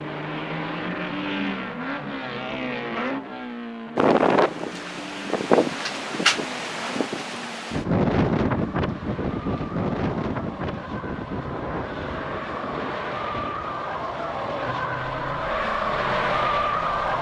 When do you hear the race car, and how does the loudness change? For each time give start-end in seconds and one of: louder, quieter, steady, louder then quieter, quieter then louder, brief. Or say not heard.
0.0-17.1 quieter then louder.